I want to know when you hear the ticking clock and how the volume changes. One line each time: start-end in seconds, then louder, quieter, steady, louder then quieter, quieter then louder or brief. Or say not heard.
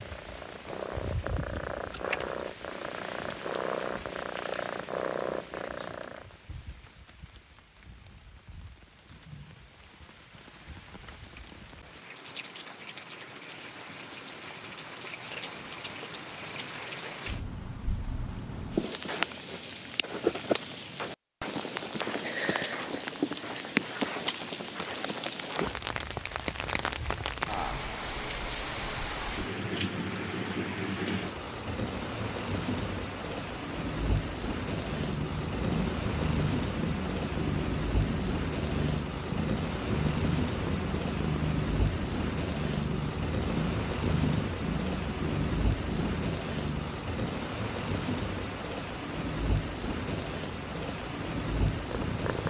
not heard.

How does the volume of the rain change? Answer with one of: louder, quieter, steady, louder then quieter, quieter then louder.
louder.